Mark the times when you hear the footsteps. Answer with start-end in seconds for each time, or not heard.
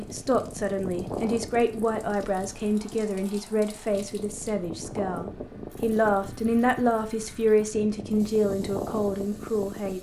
not heard.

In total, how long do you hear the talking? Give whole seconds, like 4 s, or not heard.
10 s.